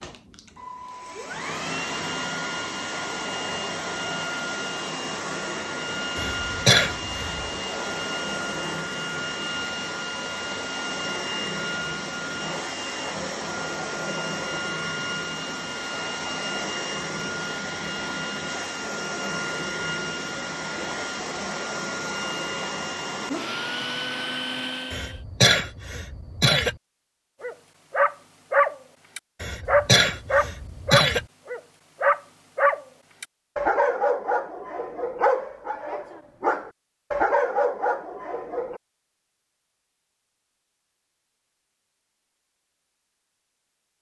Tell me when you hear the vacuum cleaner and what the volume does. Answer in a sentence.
You can hear the vacuum cleaner from 0.0 to 25.2 s, at a steady volume.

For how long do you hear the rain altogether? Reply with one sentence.
You can't hear the rain here.